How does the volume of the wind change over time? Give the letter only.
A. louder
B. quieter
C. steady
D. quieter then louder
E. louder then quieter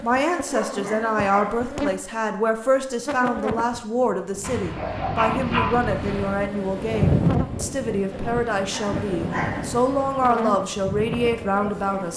E.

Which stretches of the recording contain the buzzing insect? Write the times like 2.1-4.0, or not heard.
0.0-3.9, 6.0-12.1.